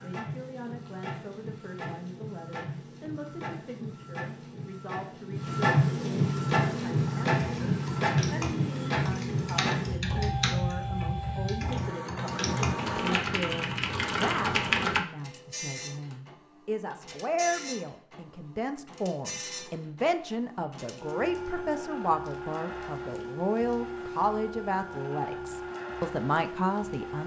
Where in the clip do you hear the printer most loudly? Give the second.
6 s.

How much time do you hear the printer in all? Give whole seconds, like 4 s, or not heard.
27 s.